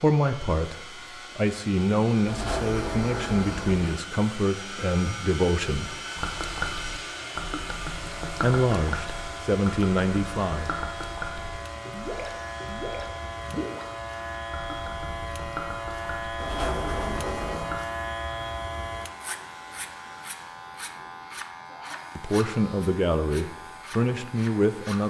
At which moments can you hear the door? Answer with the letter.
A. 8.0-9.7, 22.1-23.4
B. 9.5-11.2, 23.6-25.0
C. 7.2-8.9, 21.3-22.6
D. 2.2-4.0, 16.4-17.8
D.